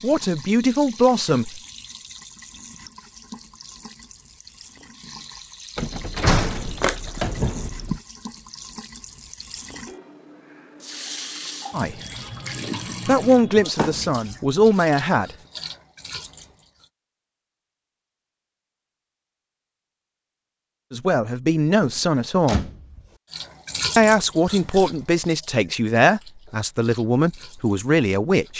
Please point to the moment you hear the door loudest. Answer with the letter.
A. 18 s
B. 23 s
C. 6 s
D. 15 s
C.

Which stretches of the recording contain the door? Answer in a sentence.
The door can be heard from 5.8 to 8.0 s, from 13.8 to 14.7 s and from 21.8 to 23.1 s.